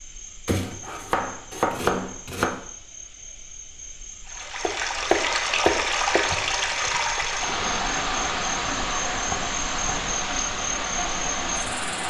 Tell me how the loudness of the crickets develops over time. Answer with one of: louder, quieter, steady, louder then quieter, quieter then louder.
louder.